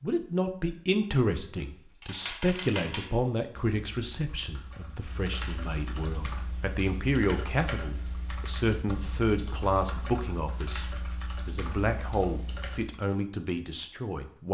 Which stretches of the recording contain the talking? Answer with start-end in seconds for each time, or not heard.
0.0-14.5.